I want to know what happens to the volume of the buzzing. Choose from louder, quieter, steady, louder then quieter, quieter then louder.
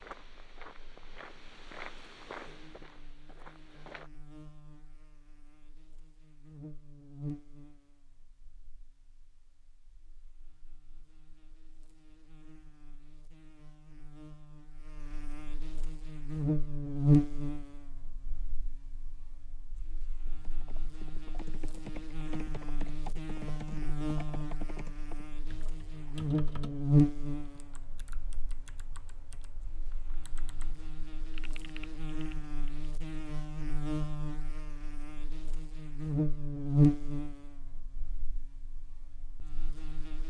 louder.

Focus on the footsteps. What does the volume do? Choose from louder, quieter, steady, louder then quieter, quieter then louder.
louder then quieter.